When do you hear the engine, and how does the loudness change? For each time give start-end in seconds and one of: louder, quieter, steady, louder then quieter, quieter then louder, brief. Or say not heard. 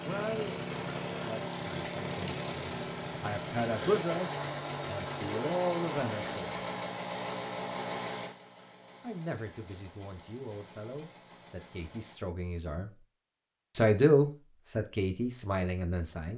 0.0-12.2 quieter.